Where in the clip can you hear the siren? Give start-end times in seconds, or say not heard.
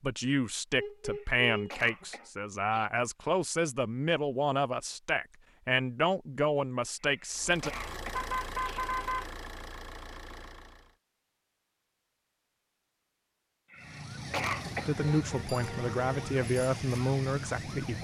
13.8-17.9.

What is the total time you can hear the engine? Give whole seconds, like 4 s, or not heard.
4 s.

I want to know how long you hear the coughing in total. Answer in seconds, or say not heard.
5 s.